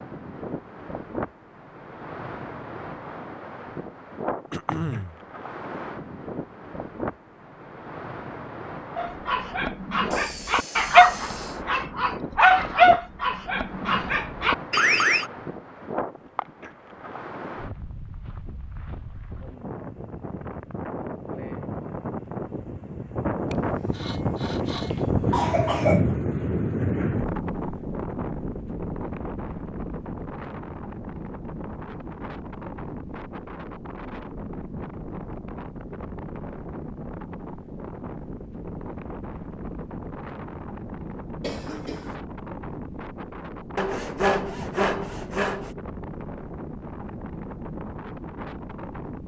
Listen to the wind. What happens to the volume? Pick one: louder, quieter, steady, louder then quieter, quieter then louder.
louder then quieter.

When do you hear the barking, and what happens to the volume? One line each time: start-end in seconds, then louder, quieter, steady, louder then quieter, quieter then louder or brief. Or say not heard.
8.9-15.2 louder then quieter.